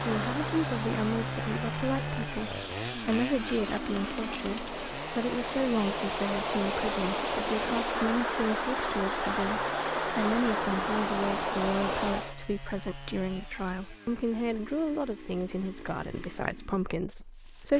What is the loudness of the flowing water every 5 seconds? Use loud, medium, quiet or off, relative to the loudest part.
medium, loud, loud, off.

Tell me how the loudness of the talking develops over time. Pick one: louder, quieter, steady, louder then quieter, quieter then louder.
steady.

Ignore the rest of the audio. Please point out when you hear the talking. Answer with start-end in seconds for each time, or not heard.
0.0-17.7.